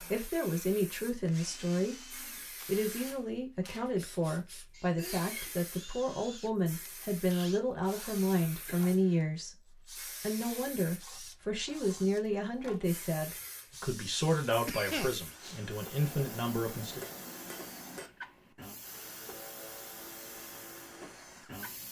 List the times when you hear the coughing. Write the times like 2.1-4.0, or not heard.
4.7-5.5, 8.7-9.2, 14.7-15.6.